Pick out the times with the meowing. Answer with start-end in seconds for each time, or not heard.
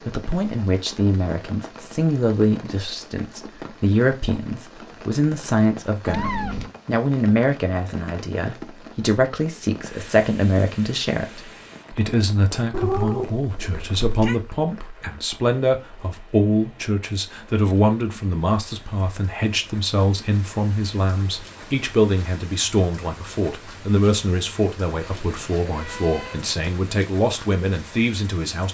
6.0-6.7, 12.7-14.4, 25.0-26.9.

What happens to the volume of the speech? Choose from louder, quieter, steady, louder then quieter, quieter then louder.
steady.